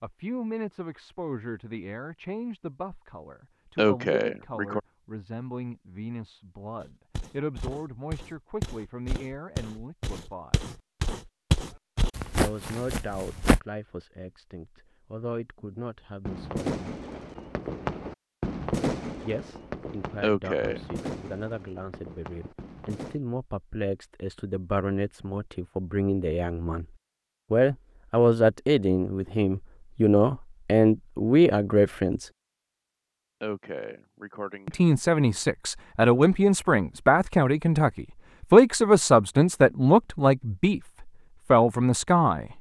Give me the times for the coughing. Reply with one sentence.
You can hear the coughing from 3.8 to 4.8 s, from 20.2 to 20.9 s and from 33.4 to 34.8 s.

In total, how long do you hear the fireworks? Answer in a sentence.
The fireworks can be heard for 7 seconds in total.